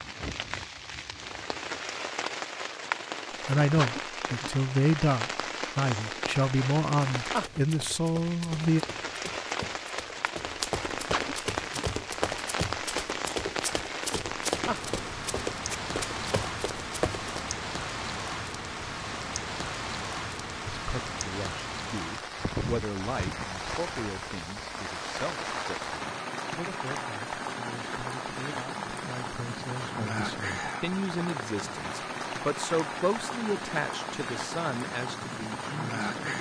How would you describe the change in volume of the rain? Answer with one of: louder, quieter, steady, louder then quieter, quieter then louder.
steady.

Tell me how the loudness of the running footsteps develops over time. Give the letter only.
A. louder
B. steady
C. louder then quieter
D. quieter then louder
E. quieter
A.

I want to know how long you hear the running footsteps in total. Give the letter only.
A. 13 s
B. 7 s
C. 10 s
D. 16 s
C.